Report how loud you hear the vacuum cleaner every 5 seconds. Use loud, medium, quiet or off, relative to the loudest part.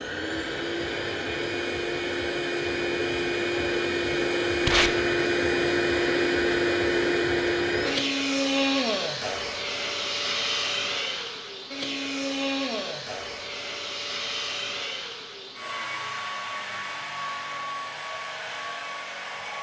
loud, loud, medium, medium.